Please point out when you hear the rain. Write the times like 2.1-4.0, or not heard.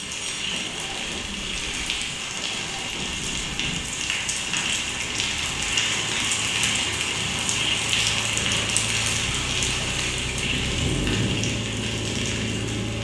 0.0-12.9.